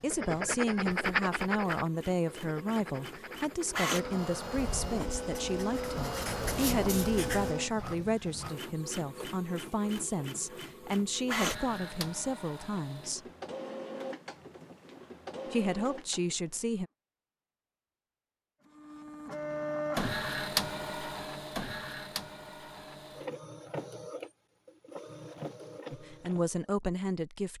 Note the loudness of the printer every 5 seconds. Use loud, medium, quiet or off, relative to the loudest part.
loud, loud, loud, loud, loud, medium.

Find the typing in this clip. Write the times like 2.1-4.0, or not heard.
not heard.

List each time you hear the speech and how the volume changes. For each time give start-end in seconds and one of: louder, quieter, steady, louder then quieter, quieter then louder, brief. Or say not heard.
0.0-13.2 steady
15.5-16.9 brief
25.9-27.5 brief.